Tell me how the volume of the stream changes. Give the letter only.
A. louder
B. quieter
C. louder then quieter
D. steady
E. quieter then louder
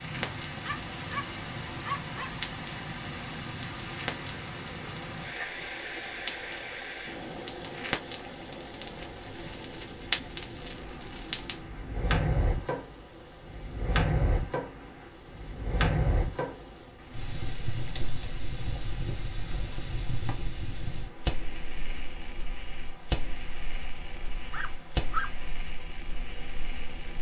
B.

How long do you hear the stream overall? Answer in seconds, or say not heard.
27 s.